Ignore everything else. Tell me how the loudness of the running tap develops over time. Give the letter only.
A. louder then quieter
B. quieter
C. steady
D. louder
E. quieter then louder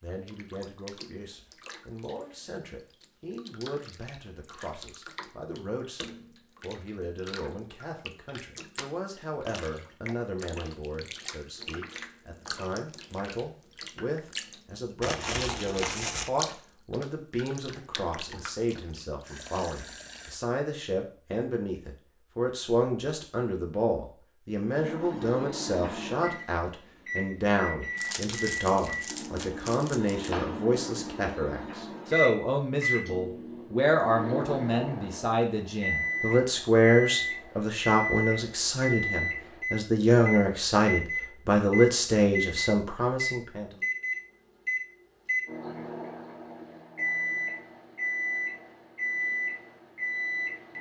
D.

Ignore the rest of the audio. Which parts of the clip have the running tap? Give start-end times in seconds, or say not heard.
0.0-20.4.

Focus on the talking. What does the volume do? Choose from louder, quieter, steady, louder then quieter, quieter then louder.
louder.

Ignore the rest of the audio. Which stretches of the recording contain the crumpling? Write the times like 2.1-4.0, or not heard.
15.0-16.3, 27.9-30.4.